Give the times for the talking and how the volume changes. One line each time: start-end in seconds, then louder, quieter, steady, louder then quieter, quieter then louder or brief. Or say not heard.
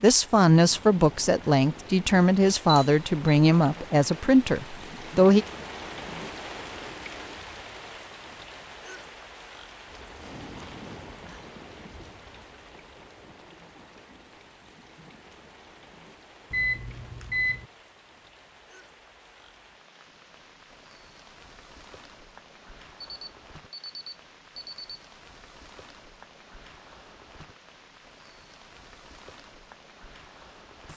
0.0-5.5 steady.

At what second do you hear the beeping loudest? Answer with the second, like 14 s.
17 s.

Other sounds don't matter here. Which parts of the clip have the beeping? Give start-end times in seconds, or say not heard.
2.6-3.4, 16.5-17.6, 23.1-24.8.